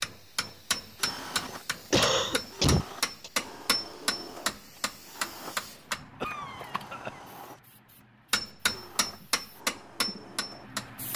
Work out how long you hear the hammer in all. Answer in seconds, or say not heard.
9 s.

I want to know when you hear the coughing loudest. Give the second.
2 s.